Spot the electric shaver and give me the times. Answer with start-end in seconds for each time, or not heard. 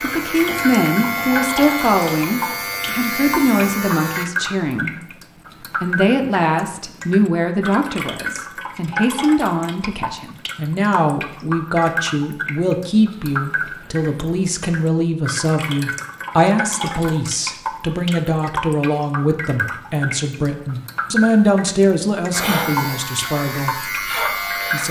0.0-4.2, 22.3-24.8.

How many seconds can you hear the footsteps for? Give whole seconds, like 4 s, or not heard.
not heard.